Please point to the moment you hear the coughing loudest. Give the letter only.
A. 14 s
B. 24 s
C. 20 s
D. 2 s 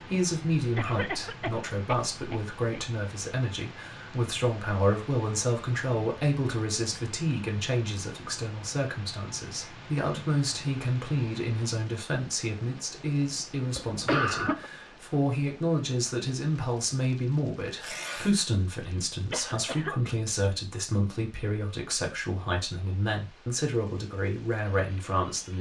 A.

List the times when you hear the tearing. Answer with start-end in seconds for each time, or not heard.
17.7-18.4.